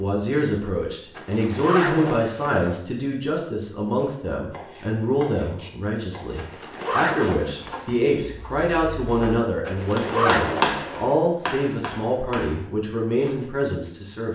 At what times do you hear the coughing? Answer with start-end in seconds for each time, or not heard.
not heard.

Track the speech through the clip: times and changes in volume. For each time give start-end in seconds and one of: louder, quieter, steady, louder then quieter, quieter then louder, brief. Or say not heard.
0.0-14.2 steady.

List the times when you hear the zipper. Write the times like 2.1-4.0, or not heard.
1.1-2.8, 6.3-8.0, 9.7-11.0.